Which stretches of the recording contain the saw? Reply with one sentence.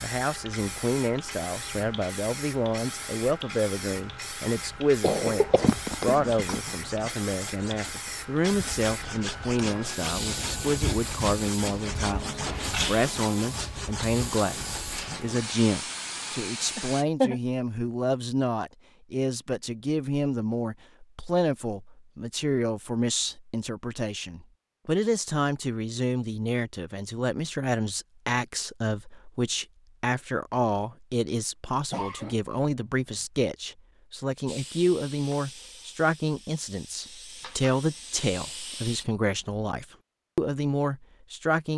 You can hear the saw from 5.6 to 15.4 s.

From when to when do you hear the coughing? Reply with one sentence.
You can hear the coughing from 5.0 to 6.6 s, from 16.8 to 17.4 s and from 31.9 to 33.2 s.